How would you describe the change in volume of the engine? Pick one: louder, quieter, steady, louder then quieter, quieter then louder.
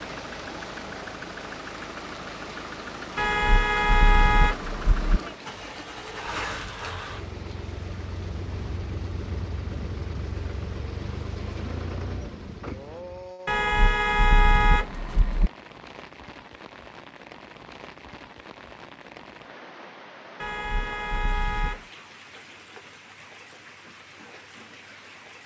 steady.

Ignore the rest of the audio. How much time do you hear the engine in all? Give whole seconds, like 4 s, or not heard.
13 s.